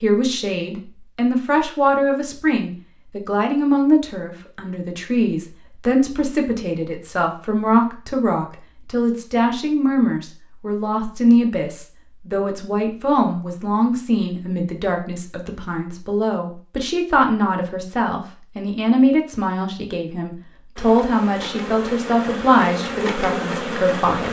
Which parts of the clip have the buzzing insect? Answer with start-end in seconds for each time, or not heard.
20.8-24.2.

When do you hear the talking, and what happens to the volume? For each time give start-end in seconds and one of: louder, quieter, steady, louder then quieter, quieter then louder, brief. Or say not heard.
0.0-24.2 steady.